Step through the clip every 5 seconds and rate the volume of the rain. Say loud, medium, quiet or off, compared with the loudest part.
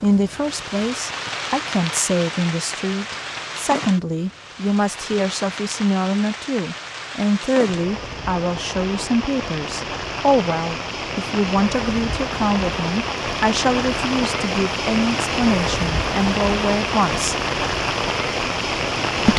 medium, medium, loud, loud.